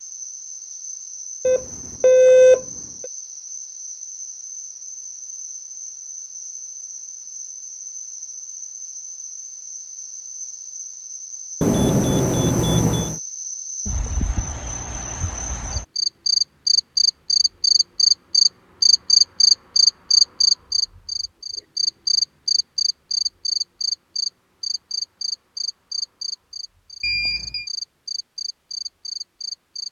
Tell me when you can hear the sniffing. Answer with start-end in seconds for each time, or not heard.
not heard.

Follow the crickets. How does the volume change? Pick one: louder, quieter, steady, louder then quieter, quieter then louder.
louder then quieter.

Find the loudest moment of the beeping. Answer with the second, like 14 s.
2 s.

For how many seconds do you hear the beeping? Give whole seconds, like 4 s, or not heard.
4 s.